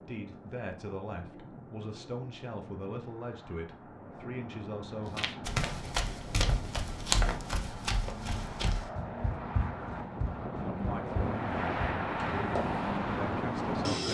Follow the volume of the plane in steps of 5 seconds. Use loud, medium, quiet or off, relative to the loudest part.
quiet, medium, loud.